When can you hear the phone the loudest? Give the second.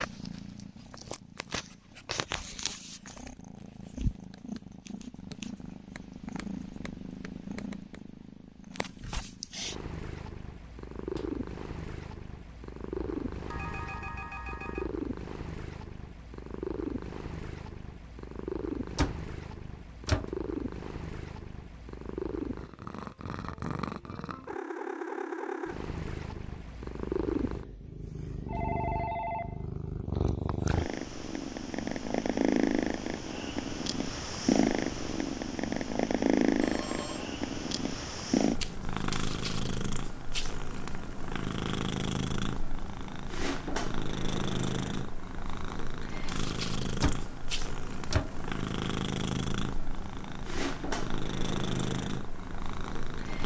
29 s.